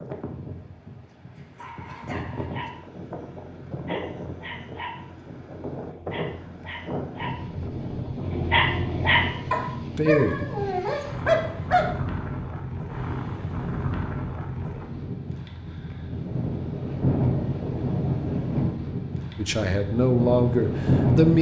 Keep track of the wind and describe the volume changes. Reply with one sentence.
The loudness of the wind goes up.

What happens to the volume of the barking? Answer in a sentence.
The loudness of the barking goes up.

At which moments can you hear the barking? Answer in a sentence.
The barking can be heard from 1.4 to 11.9 s.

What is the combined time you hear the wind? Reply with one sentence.
You can hear the wind for 21 seconds altogether.